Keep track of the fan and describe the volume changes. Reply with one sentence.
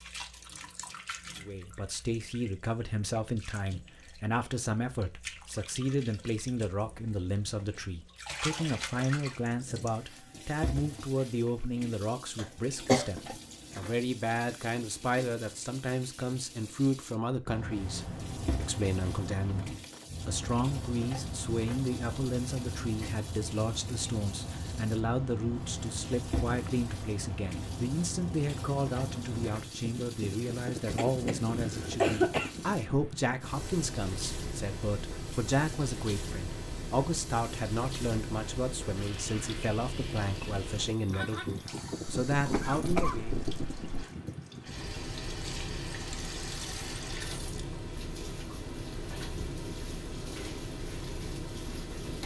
The loudness of the fan stays about the same.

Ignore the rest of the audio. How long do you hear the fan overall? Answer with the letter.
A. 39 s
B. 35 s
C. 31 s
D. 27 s
B.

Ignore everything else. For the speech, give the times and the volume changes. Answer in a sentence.
The speech can be heard from 1.4 to 43.4 s, at a steady volume.